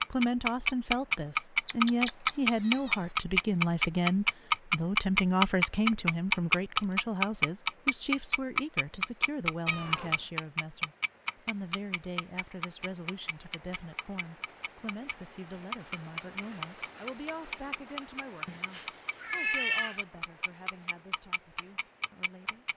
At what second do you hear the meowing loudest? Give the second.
20 s.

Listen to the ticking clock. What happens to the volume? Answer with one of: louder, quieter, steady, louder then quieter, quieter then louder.
quieter.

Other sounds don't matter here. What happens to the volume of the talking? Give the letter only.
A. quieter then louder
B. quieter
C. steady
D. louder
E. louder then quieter
B.